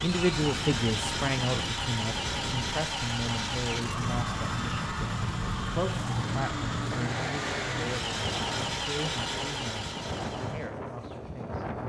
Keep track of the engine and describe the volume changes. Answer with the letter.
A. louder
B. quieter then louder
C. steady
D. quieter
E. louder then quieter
C.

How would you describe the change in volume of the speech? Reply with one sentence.
The volume of the speech goes down.